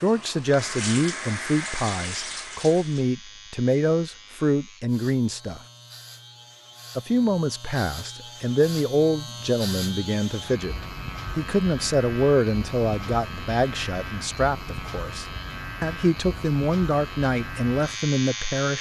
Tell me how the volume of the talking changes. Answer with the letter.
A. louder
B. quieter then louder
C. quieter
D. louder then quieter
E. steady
E.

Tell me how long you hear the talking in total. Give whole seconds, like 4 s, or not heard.
17 s.